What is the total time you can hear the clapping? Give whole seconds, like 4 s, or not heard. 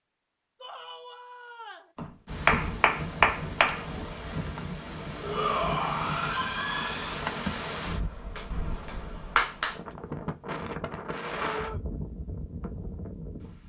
3 s.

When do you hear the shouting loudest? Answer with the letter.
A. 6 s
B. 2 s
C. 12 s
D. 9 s
A.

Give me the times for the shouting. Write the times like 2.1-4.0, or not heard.
0.6-1.9, 5.2-7.2, 11.4-11.8.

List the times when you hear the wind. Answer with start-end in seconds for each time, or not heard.
2.2-13.6.